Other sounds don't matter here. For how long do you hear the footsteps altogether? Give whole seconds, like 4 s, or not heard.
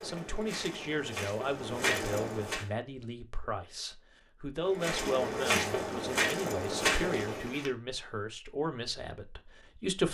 6 s.